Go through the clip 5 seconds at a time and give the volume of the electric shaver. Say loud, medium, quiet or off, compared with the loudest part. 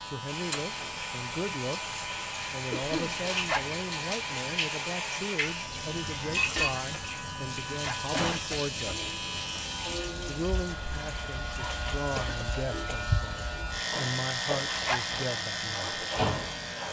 medium, medium, loud, loud.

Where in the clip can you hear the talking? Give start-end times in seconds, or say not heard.
0.0-9.1, 10.2-16.0.